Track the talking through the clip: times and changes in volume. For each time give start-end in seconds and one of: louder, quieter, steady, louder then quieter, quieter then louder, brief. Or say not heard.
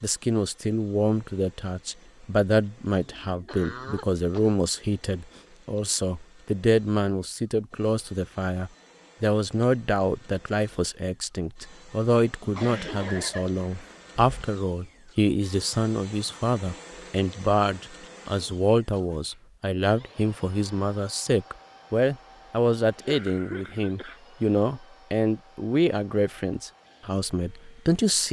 0.0-28.2 steady.